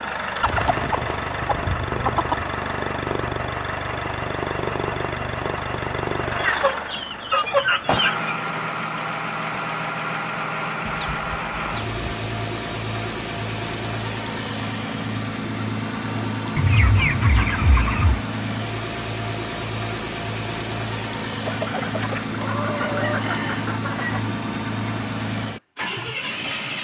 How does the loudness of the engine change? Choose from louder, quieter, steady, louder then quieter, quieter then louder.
steady.